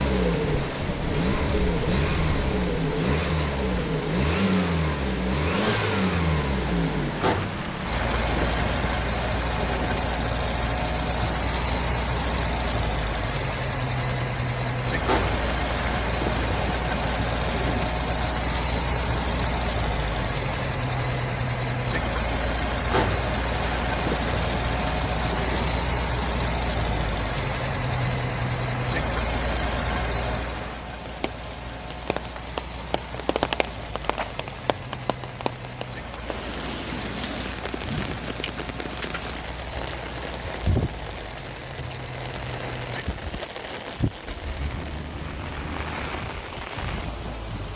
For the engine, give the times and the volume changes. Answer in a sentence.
The engine can be heard from 0.0 to 46.2 s, getting quieter.